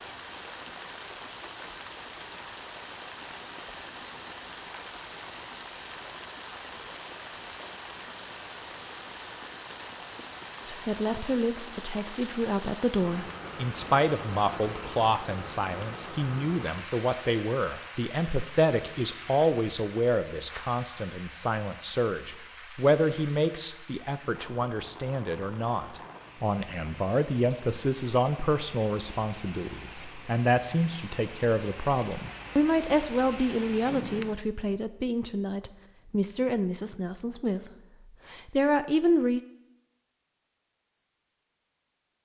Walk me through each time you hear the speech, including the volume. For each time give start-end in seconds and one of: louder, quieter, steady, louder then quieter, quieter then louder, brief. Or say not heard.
10.7-39.4 steady.